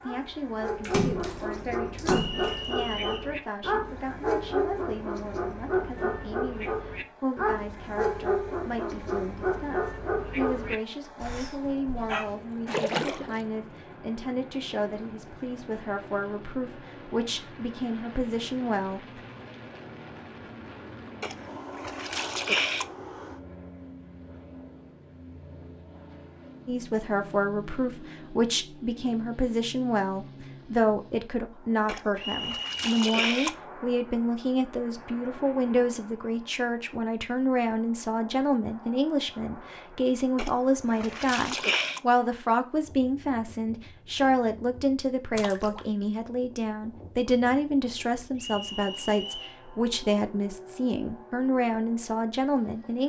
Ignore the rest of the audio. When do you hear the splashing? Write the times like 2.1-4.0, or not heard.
0.8-2.6, 12.7-13.4, 21.2-22.9, 31.9-33.5, 40.4-42.0, 45.4-45.9.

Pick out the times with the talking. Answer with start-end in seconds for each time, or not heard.
0.0-19.2, 26.6-53.0.